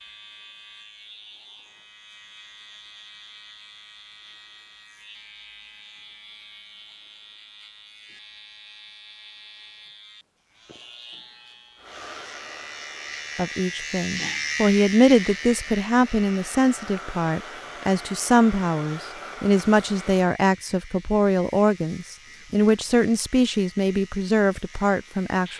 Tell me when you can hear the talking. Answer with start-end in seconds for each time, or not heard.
13.3-25.5.